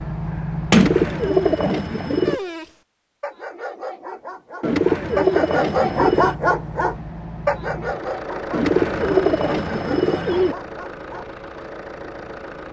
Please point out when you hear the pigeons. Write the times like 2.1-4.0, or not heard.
0.7-2.4, 4.6-6.3, 8.5-10.6.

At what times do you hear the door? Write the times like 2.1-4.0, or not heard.
0.7-1.9.